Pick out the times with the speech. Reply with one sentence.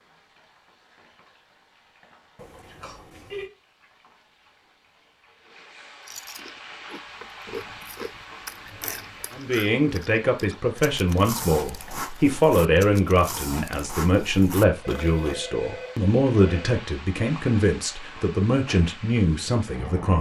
You can hear the speech from 9.3 to 20.1 s.